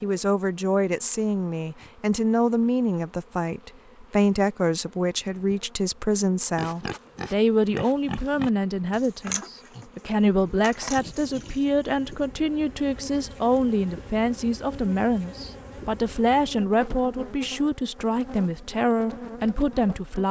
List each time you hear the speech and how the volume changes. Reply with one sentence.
You can hear the speech from 0.0 to 20.2 s, at a steady volume.